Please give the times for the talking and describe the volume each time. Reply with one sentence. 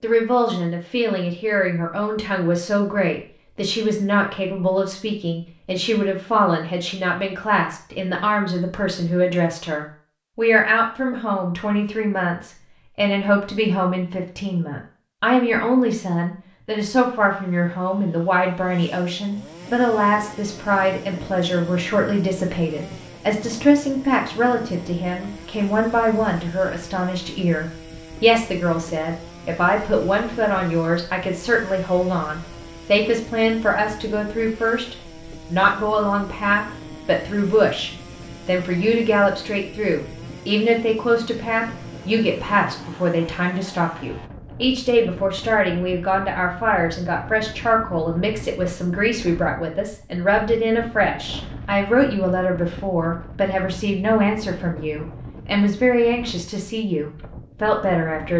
The talking can be heard from 0.0 to 58.3 s, at a steady volume.